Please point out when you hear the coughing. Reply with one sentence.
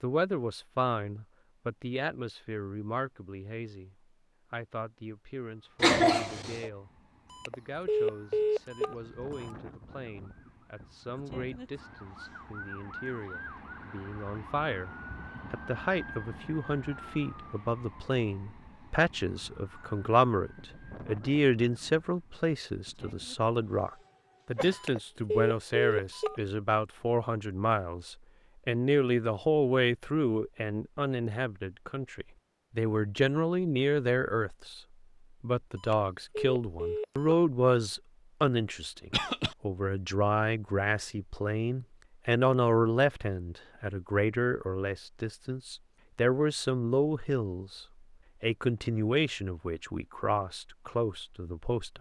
You can hear the coughing from 5.8 to 6.7 s, from 24.6 to 25.0 s and from 39.1 to 39.5 s.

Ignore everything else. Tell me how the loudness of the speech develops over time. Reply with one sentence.
The volume of the speech goes up.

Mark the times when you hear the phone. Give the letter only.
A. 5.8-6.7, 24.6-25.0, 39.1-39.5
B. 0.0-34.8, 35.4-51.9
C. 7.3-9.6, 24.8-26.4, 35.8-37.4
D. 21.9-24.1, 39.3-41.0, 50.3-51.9
C.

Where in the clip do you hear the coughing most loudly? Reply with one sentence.
The loudest moment of the coughing is at 6 seconds.